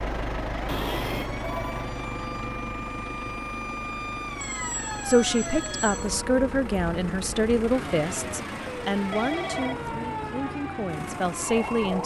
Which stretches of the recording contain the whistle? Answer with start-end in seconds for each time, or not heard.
not heard.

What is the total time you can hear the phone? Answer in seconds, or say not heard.
4 s.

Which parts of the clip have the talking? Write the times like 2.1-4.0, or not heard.
5.0-12.0.